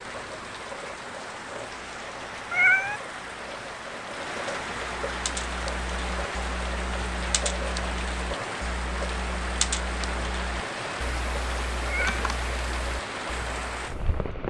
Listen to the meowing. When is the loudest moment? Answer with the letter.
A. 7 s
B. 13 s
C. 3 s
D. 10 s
C.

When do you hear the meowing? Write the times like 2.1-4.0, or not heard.
2.5-3.0, 11.8-12.2.